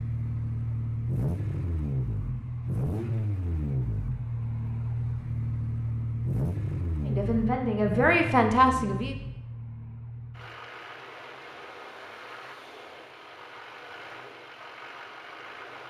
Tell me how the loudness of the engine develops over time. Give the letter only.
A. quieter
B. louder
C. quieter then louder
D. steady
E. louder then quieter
A.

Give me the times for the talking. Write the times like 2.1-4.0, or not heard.
7.0-9.2.